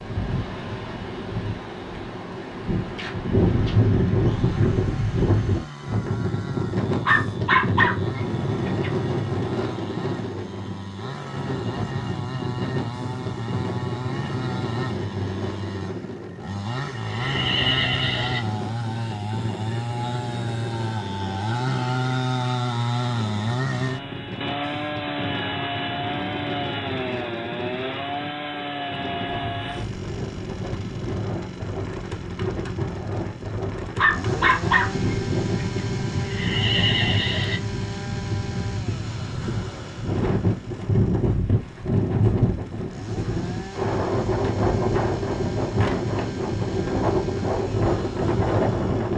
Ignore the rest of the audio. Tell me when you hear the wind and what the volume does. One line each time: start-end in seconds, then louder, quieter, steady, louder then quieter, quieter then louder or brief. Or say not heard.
0.0-49.1 quieter then louder.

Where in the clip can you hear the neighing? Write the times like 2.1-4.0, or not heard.
16.9-18.4, 36.1-37.6.